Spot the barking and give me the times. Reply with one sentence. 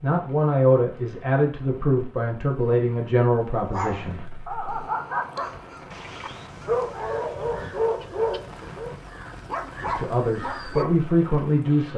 You can hear the barking from 3.7 to 11.1 s.